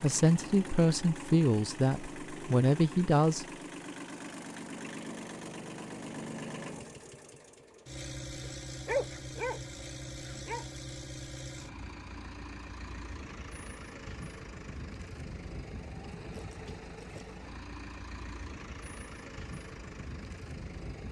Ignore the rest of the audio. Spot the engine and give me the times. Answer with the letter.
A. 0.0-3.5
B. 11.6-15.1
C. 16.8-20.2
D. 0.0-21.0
D.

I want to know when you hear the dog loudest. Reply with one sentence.
The volume of the dog peaks at 9 seconds.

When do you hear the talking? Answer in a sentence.
You can hear the talking from 0.0 to 3.5 s.